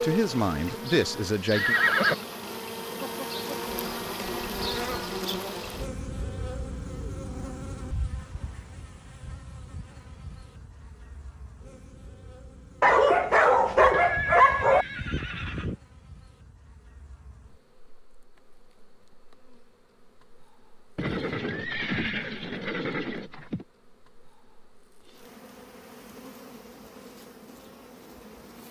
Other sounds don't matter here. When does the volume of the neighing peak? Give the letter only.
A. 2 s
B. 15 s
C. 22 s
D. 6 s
A.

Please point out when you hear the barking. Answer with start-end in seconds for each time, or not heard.
12.8-14.8.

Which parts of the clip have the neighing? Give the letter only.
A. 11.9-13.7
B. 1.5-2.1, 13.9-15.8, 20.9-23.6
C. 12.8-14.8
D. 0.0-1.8
B.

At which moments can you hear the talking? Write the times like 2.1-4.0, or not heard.
0.0-1.8.